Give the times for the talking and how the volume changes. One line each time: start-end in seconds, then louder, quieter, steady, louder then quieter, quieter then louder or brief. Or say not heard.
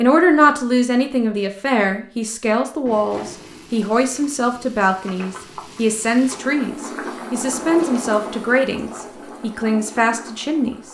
0.0-10.8 steady.